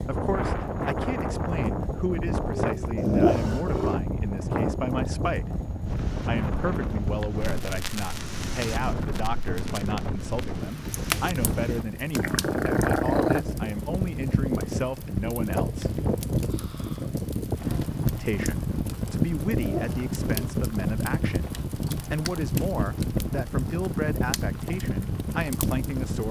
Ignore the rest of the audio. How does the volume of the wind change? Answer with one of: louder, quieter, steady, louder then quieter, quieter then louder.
steady.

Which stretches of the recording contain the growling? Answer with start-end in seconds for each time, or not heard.
3.0-4.0, 12.2-13.4, 19.4-20.6.